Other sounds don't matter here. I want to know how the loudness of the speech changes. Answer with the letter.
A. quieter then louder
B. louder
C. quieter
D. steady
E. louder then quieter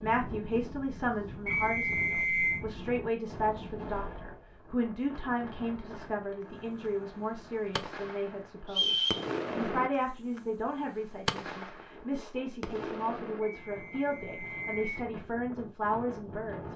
D.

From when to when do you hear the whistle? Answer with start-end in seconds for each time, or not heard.
1.4-2.6, 8.7-9.2, 13.4-14.9.